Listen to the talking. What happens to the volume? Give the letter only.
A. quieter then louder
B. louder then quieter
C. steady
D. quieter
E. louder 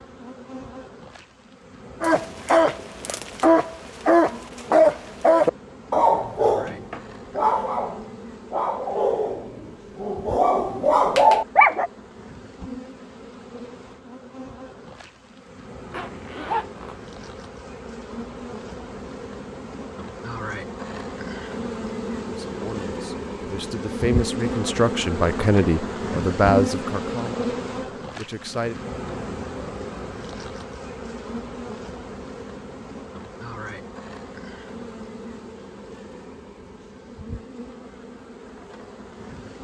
B.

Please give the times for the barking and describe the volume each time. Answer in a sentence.
You can hear the barking from 2.0 to 11.9 s, getting quieter then louder.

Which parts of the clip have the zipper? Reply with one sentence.
You can hear the zipper from 15.9 to 16.9 s.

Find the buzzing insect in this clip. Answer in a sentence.
The buzzing insect can be heard from 0.0 to 39.6 s.